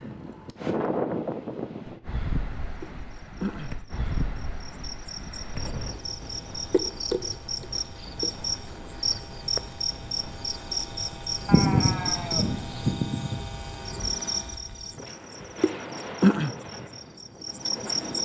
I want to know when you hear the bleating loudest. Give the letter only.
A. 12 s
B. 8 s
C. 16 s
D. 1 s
A.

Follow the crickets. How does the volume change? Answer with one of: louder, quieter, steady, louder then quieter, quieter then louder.
louder.